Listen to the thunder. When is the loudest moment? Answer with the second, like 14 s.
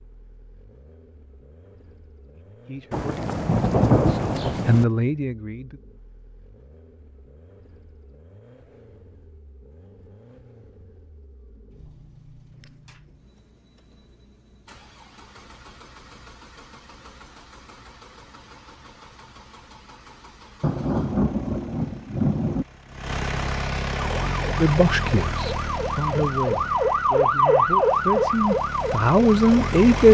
4 s.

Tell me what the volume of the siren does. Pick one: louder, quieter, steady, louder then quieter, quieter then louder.
louder then quieter.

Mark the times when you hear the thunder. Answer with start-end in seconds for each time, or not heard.
2.9-4.8, 20.6-22.6.